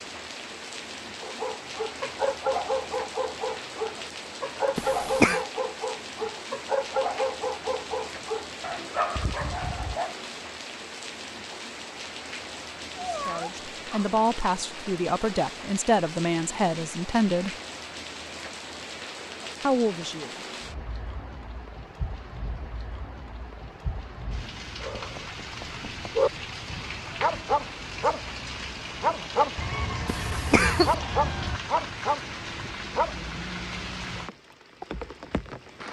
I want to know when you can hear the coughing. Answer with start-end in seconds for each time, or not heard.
4.8-5.5, 30.1-30.9.